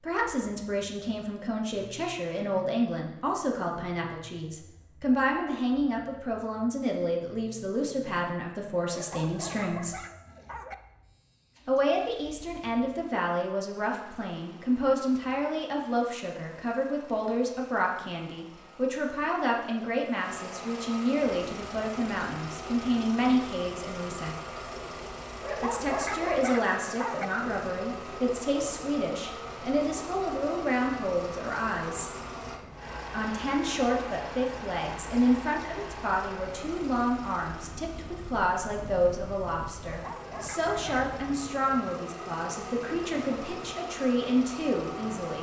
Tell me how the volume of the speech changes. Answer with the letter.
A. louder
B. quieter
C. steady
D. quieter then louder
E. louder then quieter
C.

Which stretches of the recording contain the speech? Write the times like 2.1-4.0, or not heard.
0.0-10.0, 11.7-24.4, 25.6-32.1, 33.1-45.3.